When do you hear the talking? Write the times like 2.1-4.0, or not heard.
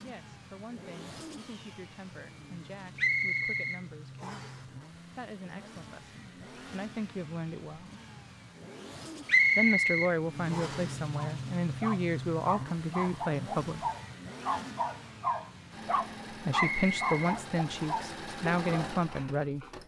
0.0-7.9, 9.6-13.8, 16.3-19.6.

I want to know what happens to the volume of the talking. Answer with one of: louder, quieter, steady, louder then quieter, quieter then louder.
louder.